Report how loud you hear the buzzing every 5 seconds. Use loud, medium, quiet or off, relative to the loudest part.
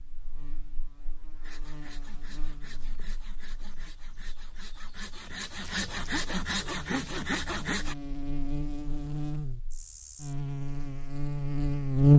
quiet, quiet, loud.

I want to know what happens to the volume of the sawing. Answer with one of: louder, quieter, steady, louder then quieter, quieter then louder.
louder.